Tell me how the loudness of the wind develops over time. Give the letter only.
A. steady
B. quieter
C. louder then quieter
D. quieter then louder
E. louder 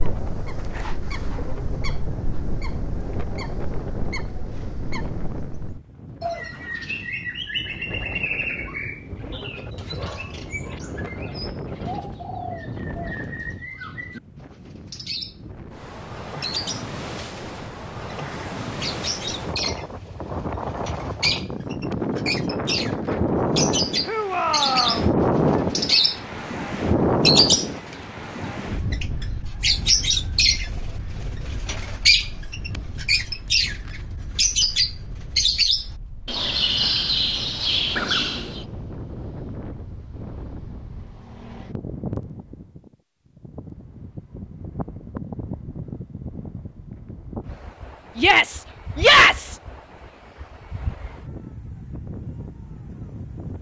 C.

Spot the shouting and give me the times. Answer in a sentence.
The shouting can be heard from 24.1 to 25.1 s and from 48.1 to 49.6 s.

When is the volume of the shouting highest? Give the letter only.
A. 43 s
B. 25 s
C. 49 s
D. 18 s
C.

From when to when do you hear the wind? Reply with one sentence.
The wind can be heard from 0.0 to 53.5 s.